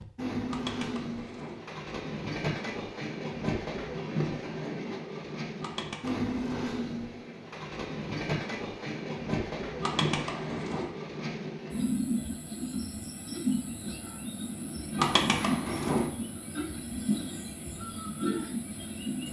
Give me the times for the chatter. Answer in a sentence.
You can't hear the chatter here.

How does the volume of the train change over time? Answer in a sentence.
The loudness of the train stays about the same.